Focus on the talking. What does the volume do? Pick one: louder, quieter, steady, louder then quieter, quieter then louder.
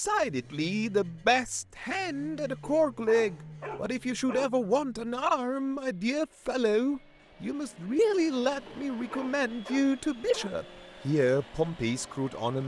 steady.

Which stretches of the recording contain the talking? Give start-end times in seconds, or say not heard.
0.0-12.6.